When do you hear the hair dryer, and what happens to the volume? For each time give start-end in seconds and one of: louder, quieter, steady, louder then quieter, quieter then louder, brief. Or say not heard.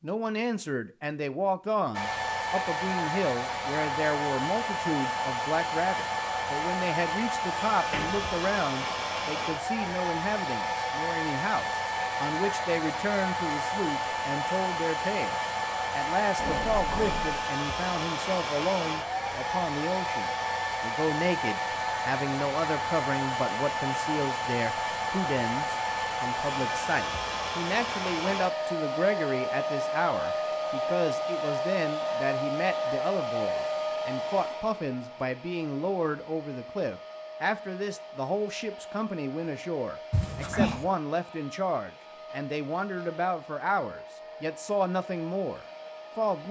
1.9-46.4 quieter.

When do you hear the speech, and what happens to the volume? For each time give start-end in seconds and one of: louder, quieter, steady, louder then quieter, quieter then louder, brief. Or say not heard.
0.0-46.4 steady.